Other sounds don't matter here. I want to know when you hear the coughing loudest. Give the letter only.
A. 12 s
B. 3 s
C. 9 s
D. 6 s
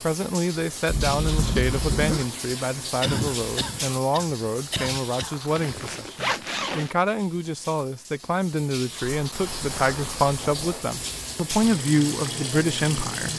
B.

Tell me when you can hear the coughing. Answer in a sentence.
The coughing can be heard from 3.0 to 5.3 s.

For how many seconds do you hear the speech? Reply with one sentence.
You can hear the speech for 13 seconds altogether.